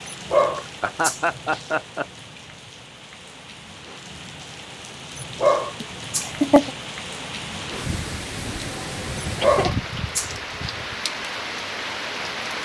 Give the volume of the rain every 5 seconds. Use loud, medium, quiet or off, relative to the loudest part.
medium, loud, loud.